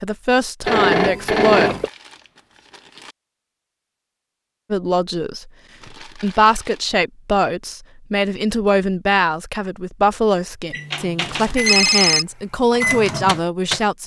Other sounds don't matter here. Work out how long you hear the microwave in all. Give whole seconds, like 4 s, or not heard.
3 s.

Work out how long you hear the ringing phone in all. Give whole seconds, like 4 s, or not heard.
2 s.